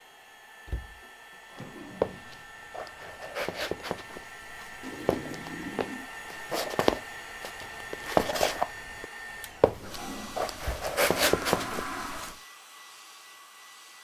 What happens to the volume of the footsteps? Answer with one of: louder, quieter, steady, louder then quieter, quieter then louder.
louder.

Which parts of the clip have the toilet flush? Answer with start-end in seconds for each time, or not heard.
1.0-2.5, 4.8-6.1, 9.7-12.3.